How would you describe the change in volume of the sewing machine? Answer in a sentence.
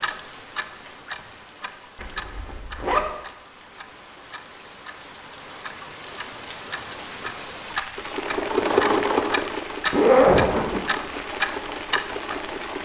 The volume of the sewing machine goes down.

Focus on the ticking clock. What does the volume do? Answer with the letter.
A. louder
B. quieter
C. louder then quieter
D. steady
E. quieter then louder
E.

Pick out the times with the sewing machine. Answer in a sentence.
The sewing machine can be heard from 8.0 to 12.8 s.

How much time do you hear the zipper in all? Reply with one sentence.
You can hear the zipper for 2 seconds altogether.